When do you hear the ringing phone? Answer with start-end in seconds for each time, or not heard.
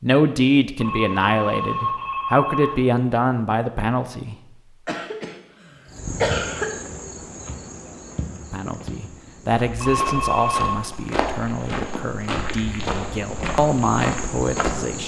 0.8-2.8, 9.8-10.8.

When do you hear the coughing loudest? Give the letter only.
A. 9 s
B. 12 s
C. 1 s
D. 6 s
D.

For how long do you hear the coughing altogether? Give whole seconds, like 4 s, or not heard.
2 s.